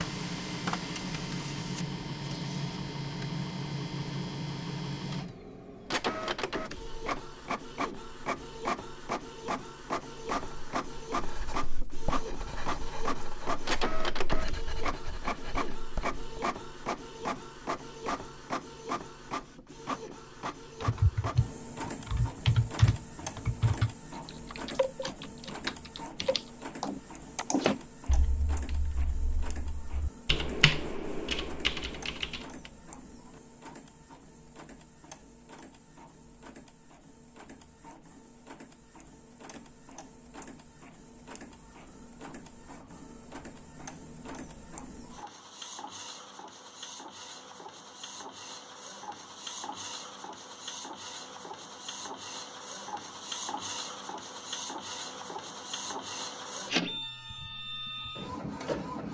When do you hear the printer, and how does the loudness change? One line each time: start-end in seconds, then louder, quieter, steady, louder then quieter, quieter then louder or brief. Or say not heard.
0.0-59.0 quieter then louder.